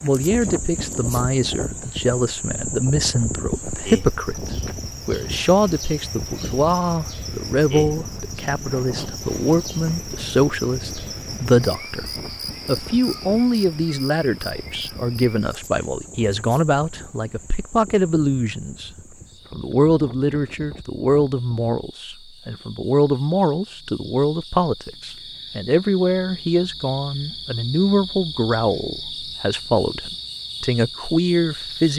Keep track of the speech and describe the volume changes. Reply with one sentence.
The volume of the speech stays about the same.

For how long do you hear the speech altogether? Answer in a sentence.
The speech can be heard for 31 seconds in total.